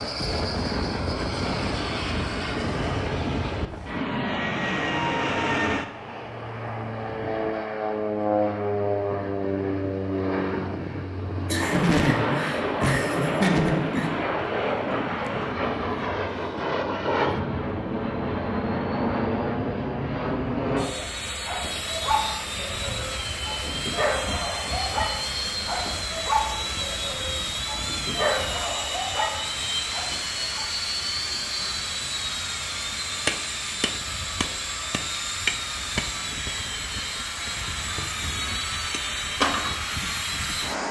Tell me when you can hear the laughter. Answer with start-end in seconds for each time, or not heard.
11.4-14.1.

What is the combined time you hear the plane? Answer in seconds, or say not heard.
41 s.